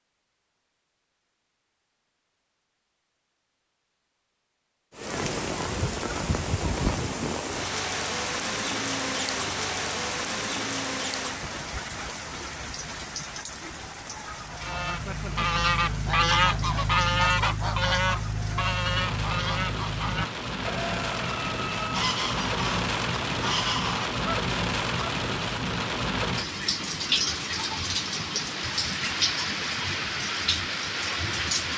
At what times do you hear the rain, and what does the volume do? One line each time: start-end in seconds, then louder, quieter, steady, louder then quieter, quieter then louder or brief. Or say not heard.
4.9-31.7 quieter then louder.